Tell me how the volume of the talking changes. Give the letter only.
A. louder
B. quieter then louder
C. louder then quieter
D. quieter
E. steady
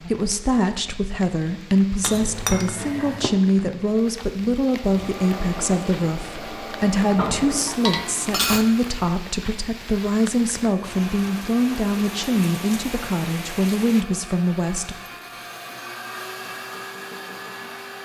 E.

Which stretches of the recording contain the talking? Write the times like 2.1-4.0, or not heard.
0.0-14.9.